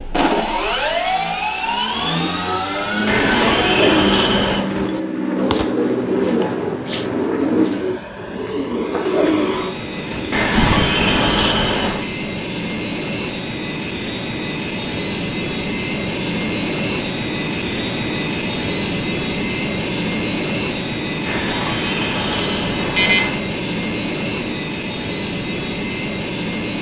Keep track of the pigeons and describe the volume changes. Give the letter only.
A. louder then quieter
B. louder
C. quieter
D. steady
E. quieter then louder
D.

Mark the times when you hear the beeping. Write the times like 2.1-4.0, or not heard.
3.0-4.7, 10.3-12.1, 21.2-23.4.